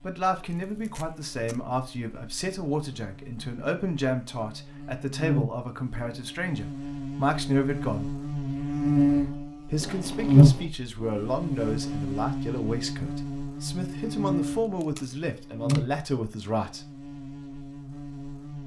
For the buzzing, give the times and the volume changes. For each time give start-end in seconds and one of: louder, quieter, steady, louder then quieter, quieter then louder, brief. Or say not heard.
0.0-18.6 louder then quieter.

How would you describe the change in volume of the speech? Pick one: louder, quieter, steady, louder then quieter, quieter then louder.
steady.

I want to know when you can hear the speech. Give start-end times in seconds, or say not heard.
0.0-8.1, 9.7-16.9.